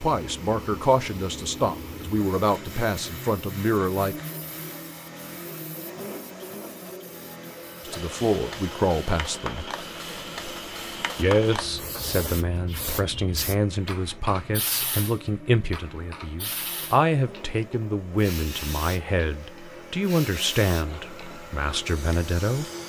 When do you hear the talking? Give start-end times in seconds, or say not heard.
0.0-4.2, 7.8-9.7, 11.2-22.6.